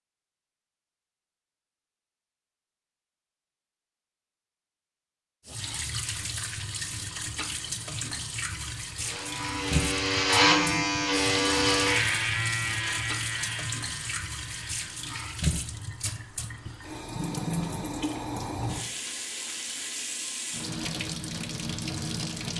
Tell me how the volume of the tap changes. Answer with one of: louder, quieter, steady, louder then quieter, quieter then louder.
steady.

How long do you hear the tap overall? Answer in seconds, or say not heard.
17 s.